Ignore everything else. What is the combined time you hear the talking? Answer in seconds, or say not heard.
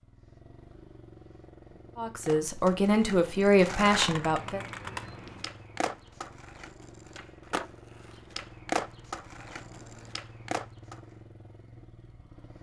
3 s.